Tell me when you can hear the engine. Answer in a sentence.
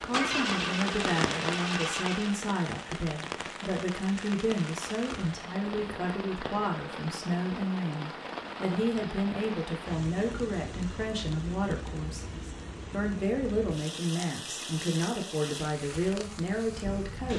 You can hear the engine from 0.0 to 2.4 s.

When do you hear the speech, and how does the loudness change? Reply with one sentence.
The speech can be heard from 0.0 to 17.3 s, at a steady volume.